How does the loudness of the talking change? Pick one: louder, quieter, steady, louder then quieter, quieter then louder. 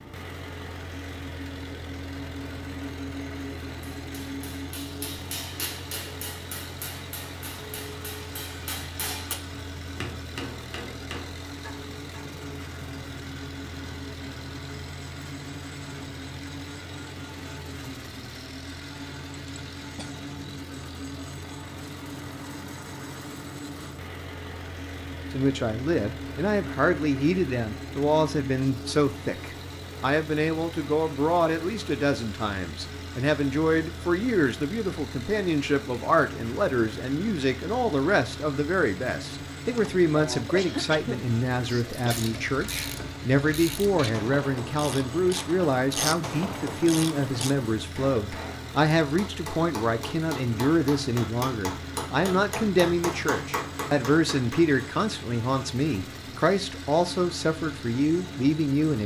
steady.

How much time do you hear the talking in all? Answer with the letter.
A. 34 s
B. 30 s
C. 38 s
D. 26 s
A.